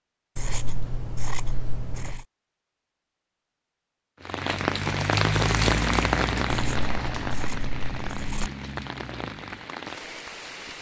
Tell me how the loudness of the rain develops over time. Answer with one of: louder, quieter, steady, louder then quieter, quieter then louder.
quieter.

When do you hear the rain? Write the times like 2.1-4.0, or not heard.
4.2-10.7.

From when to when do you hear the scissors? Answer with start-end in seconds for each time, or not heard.
0.3-2.2, 6.5-8.5.